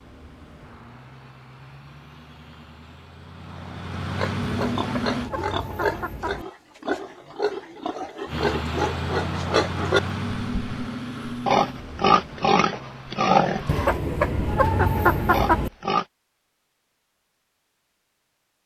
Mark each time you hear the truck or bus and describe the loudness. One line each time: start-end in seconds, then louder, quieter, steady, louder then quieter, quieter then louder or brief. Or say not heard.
0.0-5.3 louder
8.2-13.8 quieter.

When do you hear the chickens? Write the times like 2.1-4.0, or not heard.
4.4-6.5, 13.7-15.7.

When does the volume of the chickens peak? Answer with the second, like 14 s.
15 s.